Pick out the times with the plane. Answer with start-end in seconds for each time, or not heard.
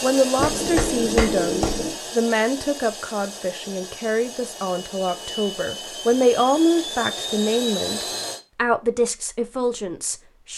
0.0-8.4.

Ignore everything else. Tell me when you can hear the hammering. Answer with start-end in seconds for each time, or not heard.
0.3-1.9.